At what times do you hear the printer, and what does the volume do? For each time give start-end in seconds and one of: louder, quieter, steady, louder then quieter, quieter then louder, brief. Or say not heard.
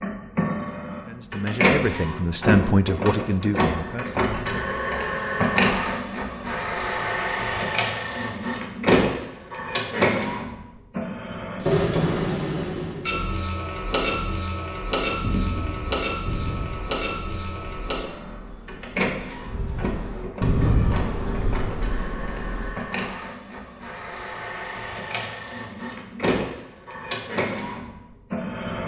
0.0-28.8 quieter.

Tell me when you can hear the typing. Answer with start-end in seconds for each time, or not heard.
15.2-22.8.